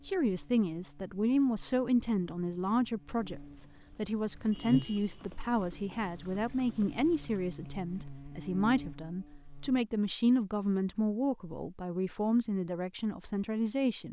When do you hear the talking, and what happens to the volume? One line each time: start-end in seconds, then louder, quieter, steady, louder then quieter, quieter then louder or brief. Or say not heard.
0.1-14.0 steady.